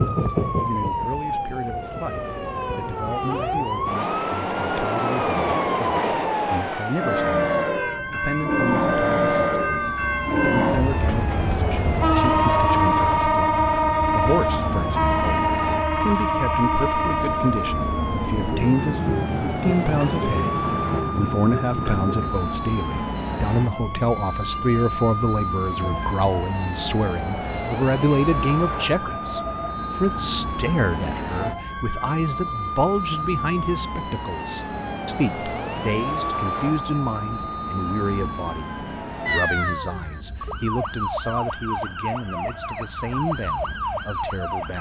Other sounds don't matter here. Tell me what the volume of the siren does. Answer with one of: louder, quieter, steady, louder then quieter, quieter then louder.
steady.